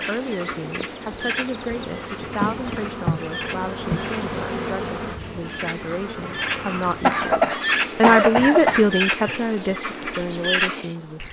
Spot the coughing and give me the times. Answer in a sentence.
The coughing can be heard from 2.2 to 2.9 s and from 7.0 to 8.8 s.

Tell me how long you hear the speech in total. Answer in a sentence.
You can hear the speech for 11 seconds altogether.